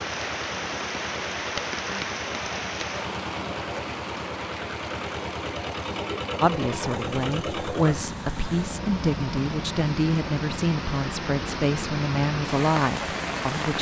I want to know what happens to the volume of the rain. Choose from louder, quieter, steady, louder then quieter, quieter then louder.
quieter then louder.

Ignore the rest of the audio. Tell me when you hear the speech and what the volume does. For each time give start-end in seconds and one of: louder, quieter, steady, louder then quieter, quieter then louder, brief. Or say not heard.
6.4-13.7 steady.